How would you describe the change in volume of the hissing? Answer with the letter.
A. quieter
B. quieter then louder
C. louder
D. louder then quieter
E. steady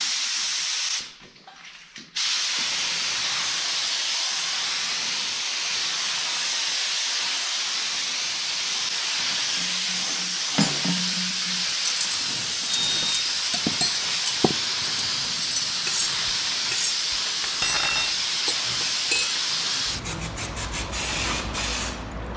E.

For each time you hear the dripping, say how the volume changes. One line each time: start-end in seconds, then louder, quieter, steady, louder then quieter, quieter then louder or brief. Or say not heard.
not heard.